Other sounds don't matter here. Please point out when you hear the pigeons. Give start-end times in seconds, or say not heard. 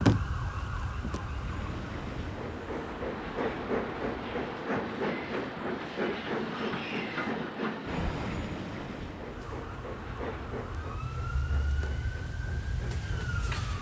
not heard.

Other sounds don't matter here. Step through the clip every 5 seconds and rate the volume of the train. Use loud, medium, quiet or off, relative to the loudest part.
loud, loud, medium.